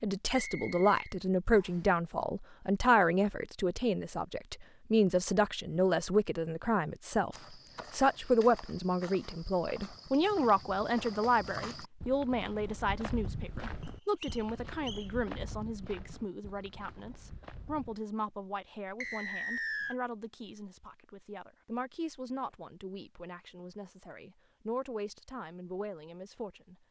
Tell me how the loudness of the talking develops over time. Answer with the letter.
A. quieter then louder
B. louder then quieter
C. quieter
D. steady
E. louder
C.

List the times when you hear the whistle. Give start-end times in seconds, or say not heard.
0.3-1.8, 13.8-15.1, 19.0-19.9.